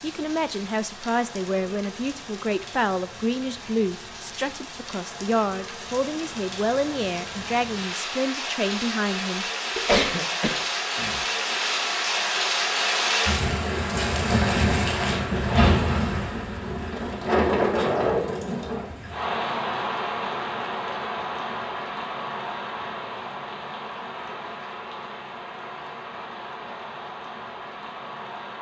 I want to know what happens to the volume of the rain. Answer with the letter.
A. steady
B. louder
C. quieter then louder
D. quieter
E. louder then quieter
E.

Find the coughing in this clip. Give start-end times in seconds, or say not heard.
9.8-11.2.